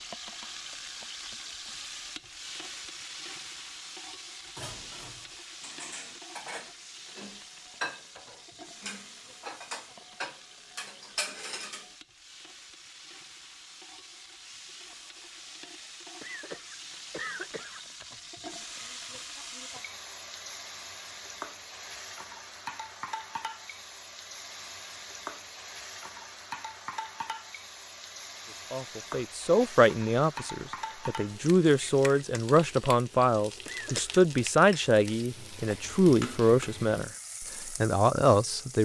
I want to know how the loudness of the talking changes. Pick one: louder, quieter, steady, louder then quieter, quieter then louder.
steady.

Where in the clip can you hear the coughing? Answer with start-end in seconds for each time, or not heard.
16.2-17.9, 33.6-34.2.